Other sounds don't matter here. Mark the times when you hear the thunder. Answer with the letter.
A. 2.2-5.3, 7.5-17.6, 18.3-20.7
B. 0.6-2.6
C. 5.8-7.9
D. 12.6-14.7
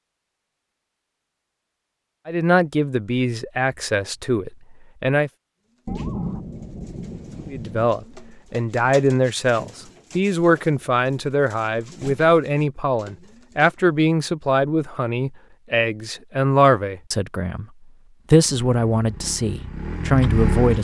C.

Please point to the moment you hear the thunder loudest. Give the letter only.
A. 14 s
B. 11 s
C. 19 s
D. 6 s
D.